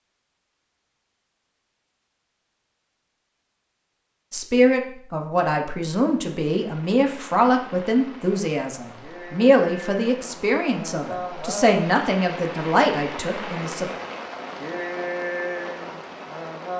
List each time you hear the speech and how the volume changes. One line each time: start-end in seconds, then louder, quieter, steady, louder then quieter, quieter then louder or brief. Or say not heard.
4.3-13.9 steady.